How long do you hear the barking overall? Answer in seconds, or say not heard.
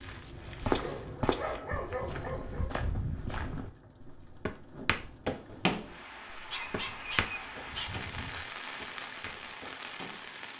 4 s.